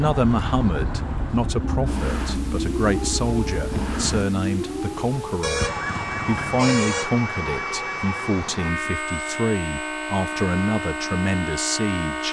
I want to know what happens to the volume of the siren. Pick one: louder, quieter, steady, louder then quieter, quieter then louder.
steady.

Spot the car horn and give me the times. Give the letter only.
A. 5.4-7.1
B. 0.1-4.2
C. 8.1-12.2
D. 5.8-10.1
A.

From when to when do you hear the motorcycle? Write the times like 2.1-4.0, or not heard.
0.1-4.2.